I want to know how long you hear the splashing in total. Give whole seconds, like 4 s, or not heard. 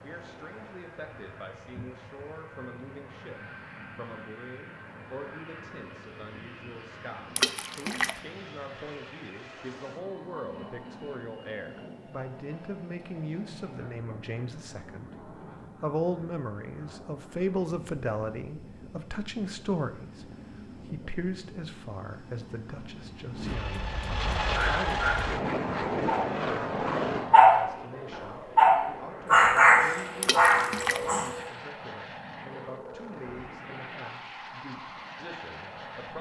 2 s.